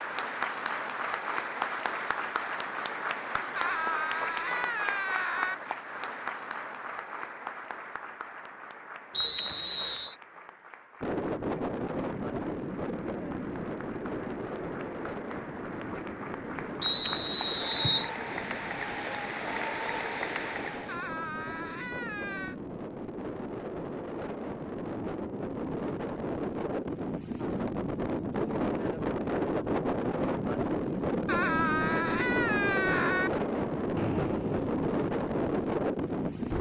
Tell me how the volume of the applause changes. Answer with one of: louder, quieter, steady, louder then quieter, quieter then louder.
quieter then louder.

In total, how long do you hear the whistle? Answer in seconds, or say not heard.
3 s.